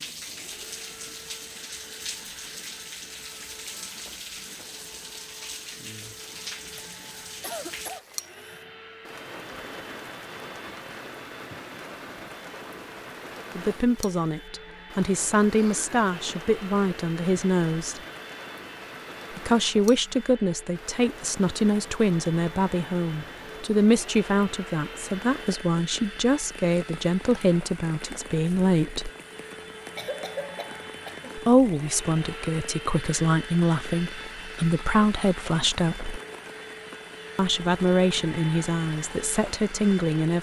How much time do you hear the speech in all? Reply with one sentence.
You can hear the speech for 22 seconds altogether.